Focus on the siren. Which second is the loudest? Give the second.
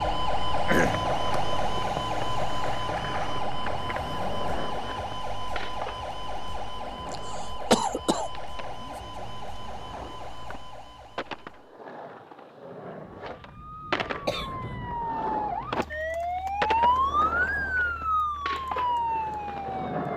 17 s.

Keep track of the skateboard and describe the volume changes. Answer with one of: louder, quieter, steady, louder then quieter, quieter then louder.
quieter then louder.